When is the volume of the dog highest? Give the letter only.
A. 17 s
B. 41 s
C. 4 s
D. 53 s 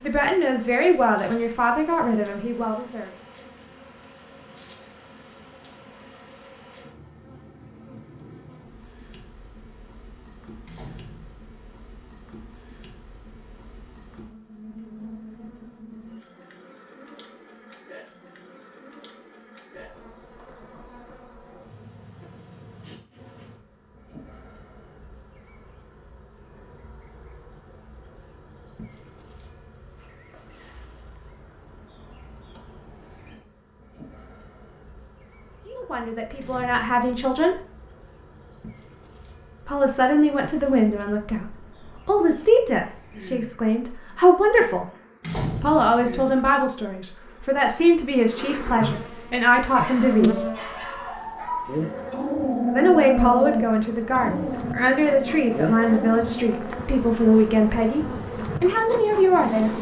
D.